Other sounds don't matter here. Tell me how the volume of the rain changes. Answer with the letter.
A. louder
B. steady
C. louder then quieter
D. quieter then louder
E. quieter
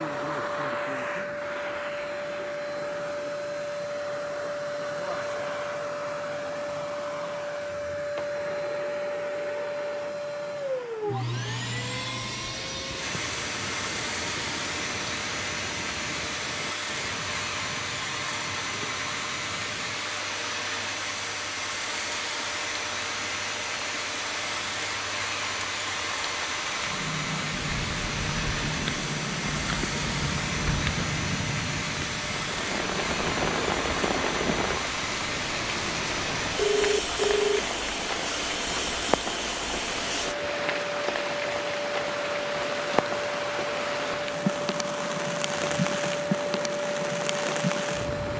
A.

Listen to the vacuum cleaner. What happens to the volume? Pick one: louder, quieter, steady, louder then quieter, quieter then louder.
steady.